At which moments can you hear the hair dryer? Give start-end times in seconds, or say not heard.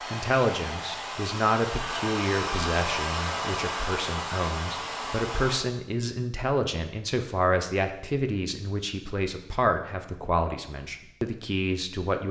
0.0-5.7.